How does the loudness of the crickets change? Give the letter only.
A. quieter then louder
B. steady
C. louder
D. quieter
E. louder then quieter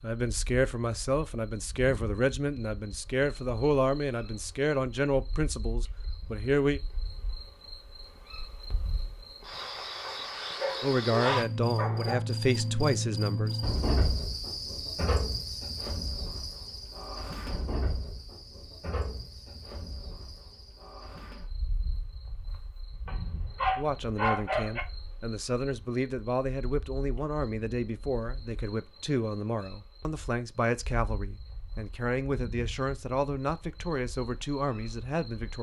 E.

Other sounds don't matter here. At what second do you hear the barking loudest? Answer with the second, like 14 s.
24 s.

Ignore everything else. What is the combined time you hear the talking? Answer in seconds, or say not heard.
21 s.